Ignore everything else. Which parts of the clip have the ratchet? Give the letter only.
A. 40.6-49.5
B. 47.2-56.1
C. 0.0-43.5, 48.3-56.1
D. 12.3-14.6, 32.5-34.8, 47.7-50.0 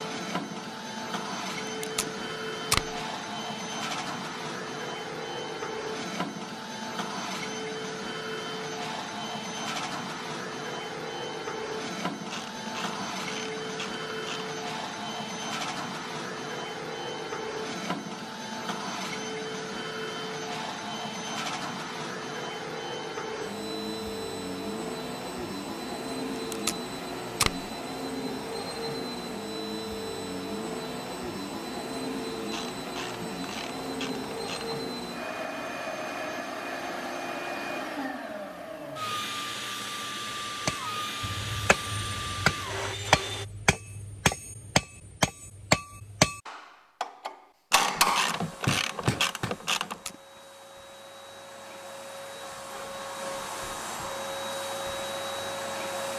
D.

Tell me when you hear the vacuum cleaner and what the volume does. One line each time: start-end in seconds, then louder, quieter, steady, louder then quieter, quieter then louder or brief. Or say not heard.
0.0-43.5 steady
48.3-56.1 louder.